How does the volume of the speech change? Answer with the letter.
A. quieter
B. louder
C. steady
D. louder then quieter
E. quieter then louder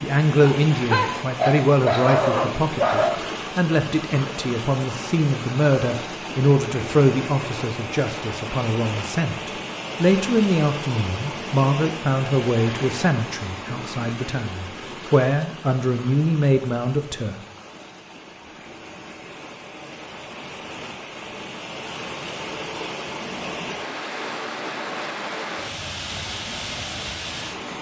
C.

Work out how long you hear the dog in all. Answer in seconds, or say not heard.
3 s.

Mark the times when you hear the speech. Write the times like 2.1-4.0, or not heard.
0.0-17.4.